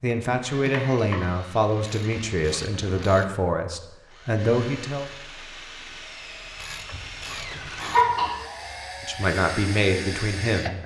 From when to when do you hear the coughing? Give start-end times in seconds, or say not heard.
0.7-1.1, 7.8-9.2.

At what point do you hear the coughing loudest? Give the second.
8 s.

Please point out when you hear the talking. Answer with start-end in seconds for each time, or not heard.
0.0-5.0, 9.0-10.8.